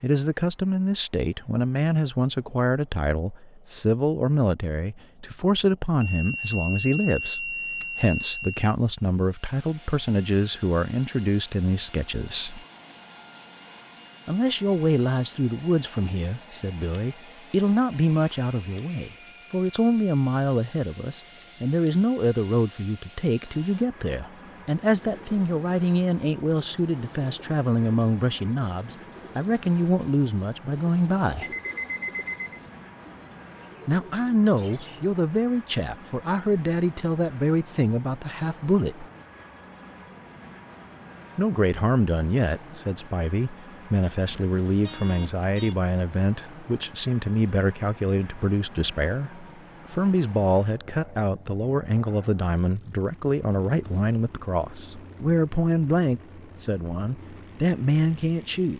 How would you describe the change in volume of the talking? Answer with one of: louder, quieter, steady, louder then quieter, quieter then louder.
steady.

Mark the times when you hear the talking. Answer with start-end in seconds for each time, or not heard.
0.0-12.6, 14.2-31.5, 33.9-39.0, 41.4-58.7.